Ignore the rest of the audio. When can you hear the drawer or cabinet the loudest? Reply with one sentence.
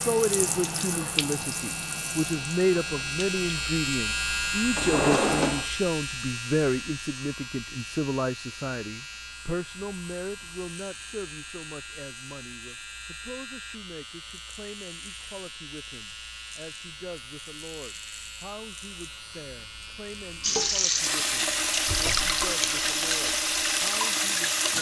The loudest moment of the drawer or cabinet is at 5 seconds.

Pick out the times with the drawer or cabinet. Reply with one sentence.
The drawer or cabinet can be heard from 4.8 to 5.7 s and from 21.9 to 22.4 s.